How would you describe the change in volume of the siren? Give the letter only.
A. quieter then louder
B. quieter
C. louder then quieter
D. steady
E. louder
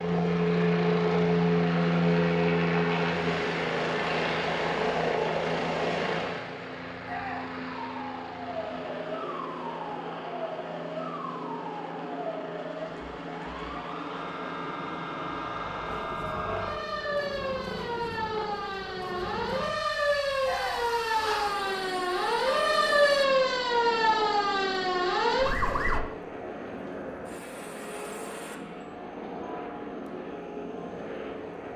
E.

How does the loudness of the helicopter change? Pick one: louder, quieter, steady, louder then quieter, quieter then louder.
quieter.